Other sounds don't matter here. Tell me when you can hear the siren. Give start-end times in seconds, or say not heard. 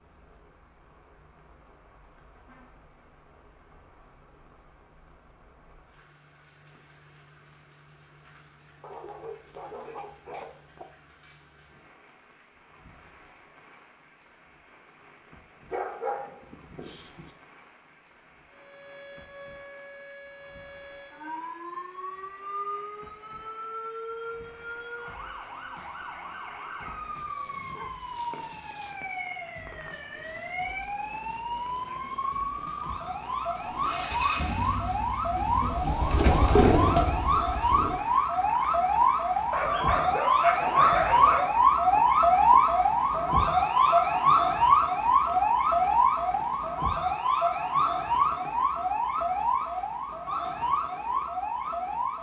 18.5-52.1.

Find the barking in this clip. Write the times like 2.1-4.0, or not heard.
8.8-10.8, 15.7-17.3, 27.1-28.9, 39.5-41.5.